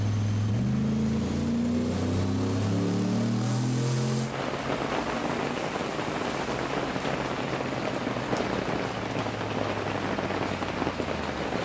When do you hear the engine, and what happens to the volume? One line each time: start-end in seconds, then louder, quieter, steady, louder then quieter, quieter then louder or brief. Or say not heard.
0.0-11.5 quieter.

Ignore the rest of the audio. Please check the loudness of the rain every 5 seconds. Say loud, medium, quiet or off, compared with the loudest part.
medium, loud, loud.